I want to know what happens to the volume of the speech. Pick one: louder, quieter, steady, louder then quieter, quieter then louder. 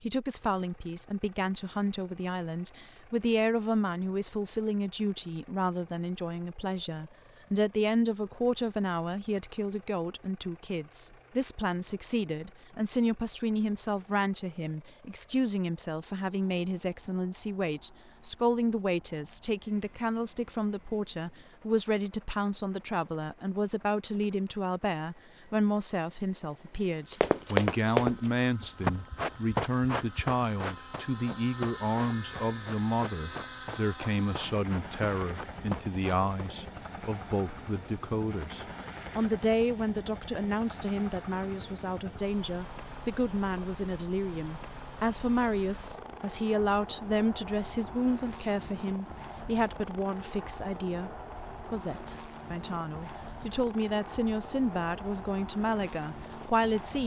steady.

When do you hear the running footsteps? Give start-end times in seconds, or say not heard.
27.1-36.5.